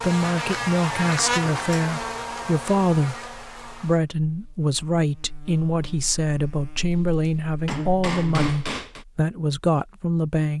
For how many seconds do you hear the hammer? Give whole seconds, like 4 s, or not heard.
2 s.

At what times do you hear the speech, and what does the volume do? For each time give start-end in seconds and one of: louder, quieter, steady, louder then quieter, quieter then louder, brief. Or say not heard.
0.0-10.5 steady.